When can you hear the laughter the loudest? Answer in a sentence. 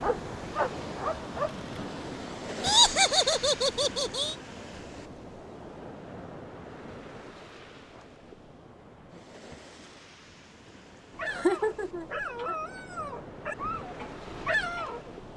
The loudest moment of the laughter is at 3 seconds.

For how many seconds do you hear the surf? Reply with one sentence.
You can hear the surf for 15 seconds altogether.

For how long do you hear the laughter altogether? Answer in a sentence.
The laughter can be heard for 3 seconds in total.